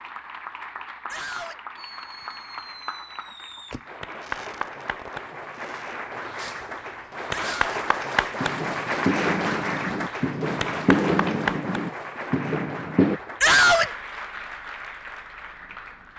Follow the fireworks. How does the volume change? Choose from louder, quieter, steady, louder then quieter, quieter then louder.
louder.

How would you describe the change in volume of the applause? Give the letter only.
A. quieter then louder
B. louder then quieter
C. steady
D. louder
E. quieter
B.